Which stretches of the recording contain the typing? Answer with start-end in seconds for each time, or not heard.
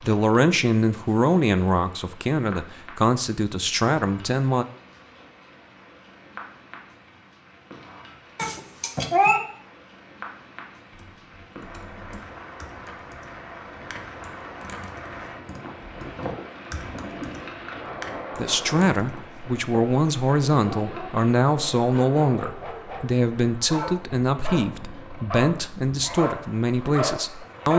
10.9-19.6.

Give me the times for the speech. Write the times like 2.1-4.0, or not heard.
0.0-4.7, 18.4-27.7.